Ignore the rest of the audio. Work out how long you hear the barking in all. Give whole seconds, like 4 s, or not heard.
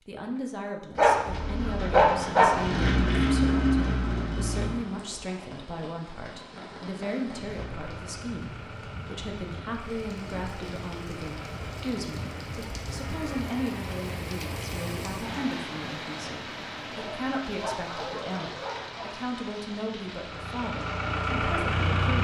4 s.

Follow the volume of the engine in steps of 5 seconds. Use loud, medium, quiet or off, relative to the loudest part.
loud, quiet, quiet, off, loud.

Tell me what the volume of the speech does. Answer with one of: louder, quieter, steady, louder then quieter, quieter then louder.
steady.